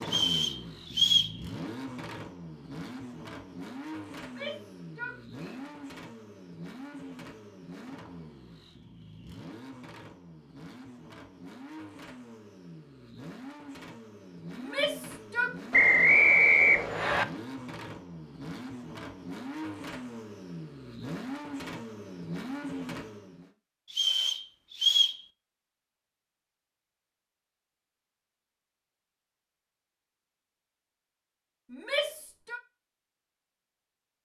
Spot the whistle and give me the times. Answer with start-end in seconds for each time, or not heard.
0.1-1.4, 15.7-17.2, 23.9-25.2.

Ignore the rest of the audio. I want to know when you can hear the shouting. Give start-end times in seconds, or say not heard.
4.2-5.7, 14.6-15.6, 31.7-32.6.